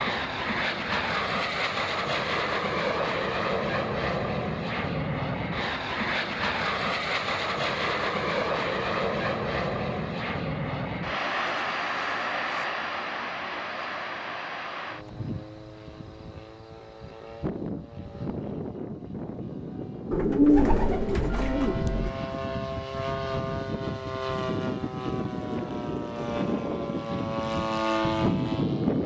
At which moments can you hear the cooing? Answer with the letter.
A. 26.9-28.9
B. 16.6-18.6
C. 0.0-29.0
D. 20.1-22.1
D.